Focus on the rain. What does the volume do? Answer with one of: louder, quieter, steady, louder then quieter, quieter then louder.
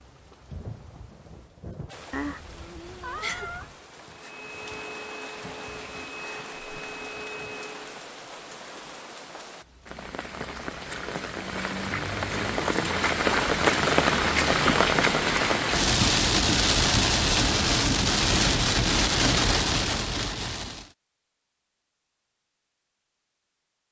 louder.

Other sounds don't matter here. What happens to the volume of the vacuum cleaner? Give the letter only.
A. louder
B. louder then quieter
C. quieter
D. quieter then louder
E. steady
E.